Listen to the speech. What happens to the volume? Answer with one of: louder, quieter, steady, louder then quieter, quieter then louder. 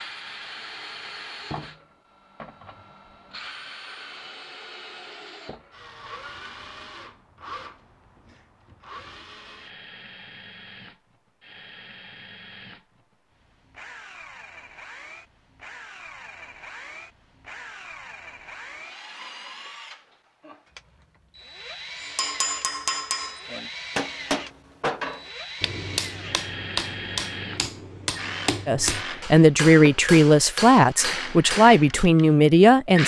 steady.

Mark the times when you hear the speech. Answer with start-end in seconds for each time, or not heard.
28.6-33.0.